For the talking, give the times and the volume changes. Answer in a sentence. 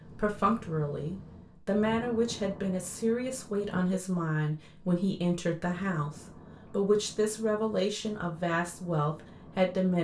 You can hear the talking from 0.1 to 10.0 s, at a steady volume.